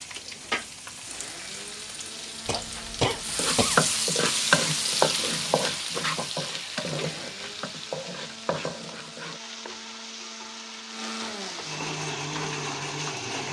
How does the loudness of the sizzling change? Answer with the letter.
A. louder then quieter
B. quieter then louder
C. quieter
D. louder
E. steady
A.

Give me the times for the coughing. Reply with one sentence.
The coughing can be heard from 2.5 to 3.9 s.